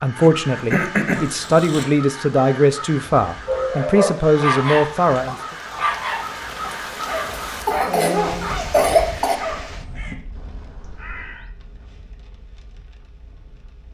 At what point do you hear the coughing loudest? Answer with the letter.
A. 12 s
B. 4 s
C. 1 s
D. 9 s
D.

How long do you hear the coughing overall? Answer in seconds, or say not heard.
3 s.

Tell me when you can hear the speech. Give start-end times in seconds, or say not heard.
0.0-5.3.